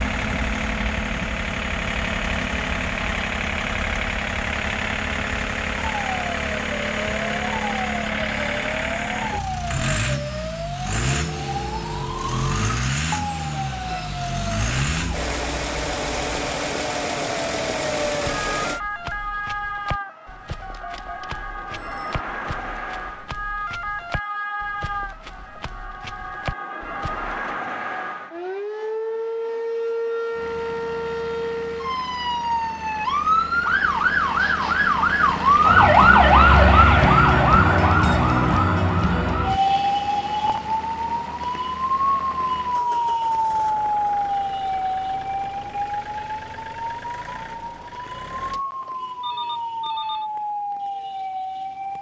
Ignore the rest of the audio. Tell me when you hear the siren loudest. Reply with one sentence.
The loudest moment of the siren is at 36 seconds.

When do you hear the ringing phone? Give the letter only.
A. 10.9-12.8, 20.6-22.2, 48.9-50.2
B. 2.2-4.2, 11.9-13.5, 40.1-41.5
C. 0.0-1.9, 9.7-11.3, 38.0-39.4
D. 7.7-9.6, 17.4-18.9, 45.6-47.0
A.